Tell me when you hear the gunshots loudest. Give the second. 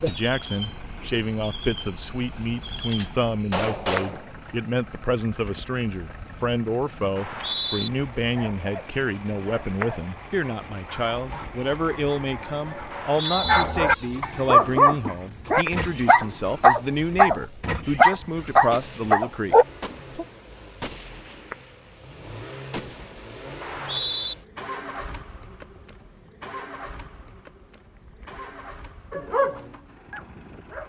4 s.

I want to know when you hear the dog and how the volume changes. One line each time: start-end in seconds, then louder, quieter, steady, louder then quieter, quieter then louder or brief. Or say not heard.
8.2-19.6 louder
29.1-30.8 brief.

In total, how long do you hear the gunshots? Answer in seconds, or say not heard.
6 s.